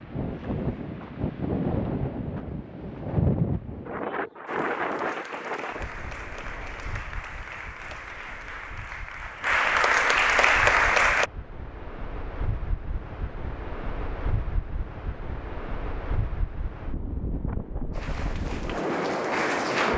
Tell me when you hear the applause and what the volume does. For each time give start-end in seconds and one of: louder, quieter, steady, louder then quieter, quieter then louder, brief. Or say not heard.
4.5-11.3 louder
17.9-19.9 brief.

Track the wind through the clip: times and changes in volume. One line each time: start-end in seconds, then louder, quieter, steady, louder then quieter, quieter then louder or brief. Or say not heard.
0.0-19.9 quieter then louder.